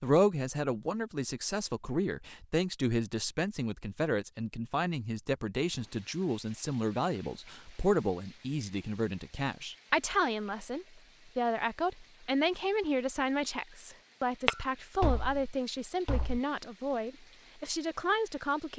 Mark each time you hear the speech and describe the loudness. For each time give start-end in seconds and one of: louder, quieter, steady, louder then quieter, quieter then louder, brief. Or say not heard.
0.0-18.7 steady.